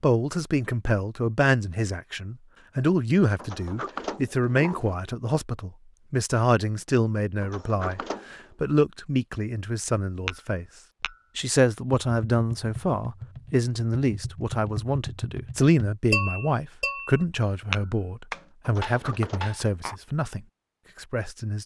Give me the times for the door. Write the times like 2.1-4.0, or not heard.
3.4-5.0, 7.4-8.4, 18.6-19.4.